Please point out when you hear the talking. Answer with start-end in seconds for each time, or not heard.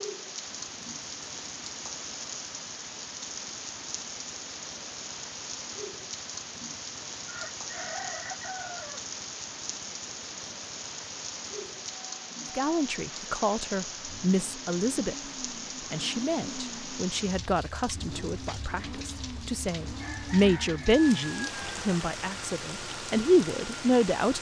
12.6-15.2, 15.9-24.3.